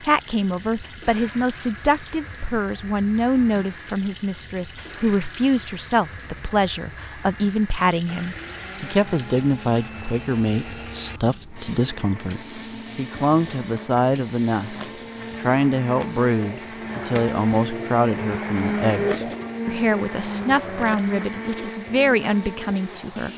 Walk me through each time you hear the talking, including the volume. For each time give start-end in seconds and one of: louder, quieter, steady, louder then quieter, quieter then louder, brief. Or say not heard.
0.0-14.8 steady
15.3-23.3 steady.